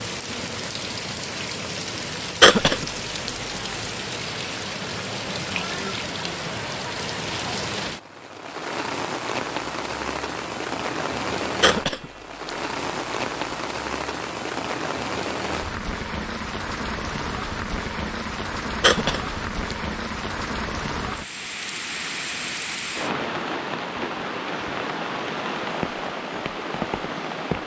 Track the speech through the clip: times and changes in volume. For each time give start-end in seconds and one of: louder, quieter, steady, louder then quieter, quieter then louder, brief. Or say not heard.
not heard.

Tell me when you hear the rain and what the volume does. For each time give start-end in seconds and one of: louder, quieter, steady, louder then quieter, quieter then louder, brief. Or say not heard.
0.0-27.6 steady.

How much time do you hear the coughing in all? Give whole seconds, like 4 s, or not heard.
3 s.